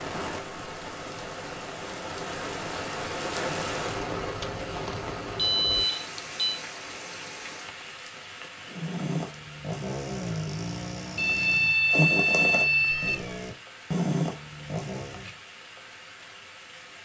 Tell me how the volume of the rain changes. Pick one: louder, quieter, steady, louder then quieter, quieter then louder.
quieter.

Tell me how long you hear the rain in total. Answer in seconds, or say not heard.
17 s.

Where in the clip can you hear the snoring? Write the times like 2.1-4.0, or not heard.
8.7-15.3.